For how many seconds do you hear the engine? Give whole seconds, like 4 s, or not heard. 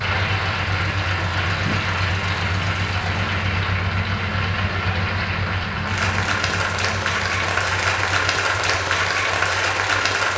10 s.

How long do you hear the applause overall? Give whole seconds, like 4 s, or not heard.
10 s.